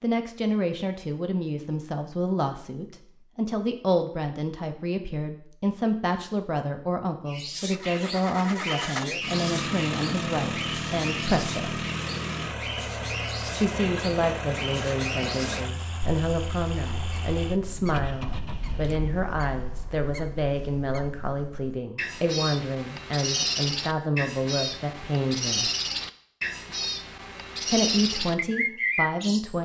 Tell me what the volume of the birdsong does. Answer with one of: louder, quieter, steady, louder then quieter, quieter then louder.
quieter then louder.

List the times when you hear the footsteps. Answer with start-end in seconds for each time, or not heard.
not heard.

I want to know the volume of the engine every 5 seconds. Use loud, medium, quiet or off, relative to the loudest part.
off, loud, loud, medium, off, off.